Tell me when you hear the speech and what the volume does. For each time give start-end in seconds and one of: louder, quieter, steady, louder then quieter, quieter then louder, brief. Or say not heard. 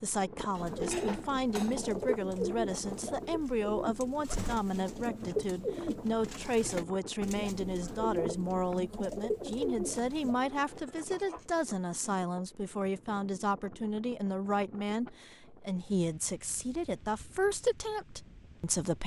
0.0-19.0 steady.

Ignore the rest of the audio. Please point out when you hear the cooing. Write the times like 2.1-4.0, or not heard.
0.6-10.4.